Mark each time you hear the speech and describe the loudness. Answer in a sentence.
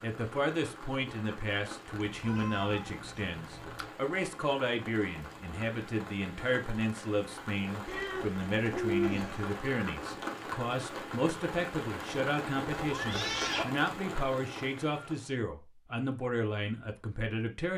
The speech can be heard from 0.0 to 17.7 s, at a steady volume.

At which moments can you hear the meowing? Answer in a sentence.
The meowing can be heard from 2.1 to 3.9 s, from 7.8 to 9.4 s and from 12.8 to 13.7 s.